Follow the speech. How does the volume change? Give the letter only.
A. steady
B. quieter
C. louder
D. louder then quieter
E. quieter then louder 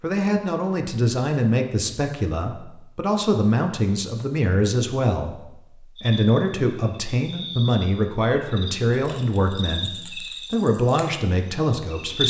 A.